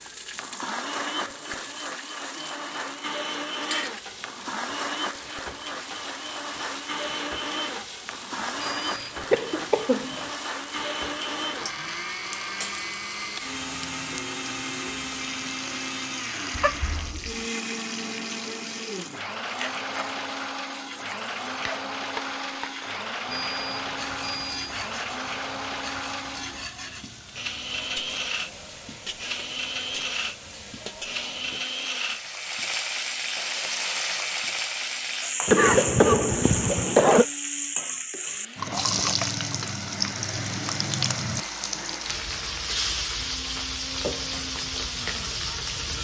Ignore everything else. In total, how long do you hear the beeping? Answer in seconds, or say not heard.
2 s.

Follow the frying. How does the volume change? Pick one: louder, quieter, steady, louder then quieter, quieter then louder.
louder.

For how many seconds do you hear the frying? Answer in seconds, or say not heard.
46 s.